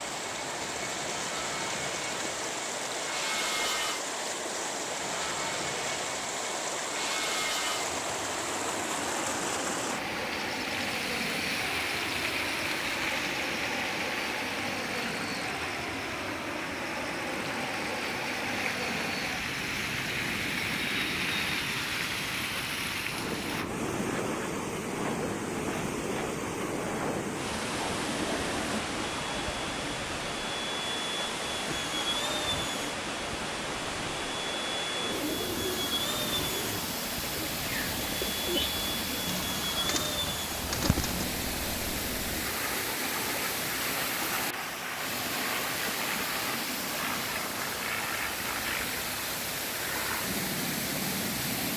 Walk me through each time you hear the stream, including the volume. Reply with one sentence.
The stream can be heard from 0.0 to 51.7 s, at a steady volume.